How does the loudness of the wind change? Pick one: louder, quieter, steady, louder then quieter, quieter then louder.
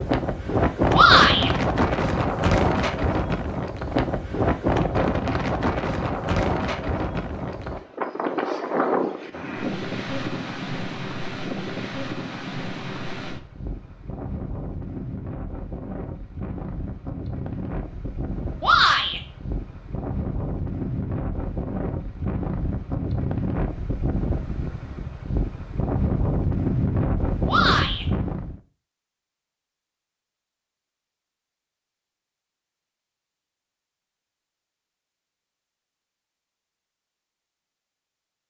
quieter then louder.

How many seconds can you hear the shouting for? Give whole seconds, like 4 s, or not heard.
2 s.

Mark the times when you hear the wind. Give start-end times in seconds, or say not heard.
0.0-28.6.